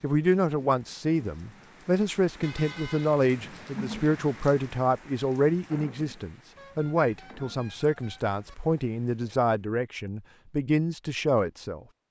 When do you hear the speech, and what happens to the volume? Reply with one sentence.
The speech can be heard from 0.0 to 11.8 s, at a steady volume.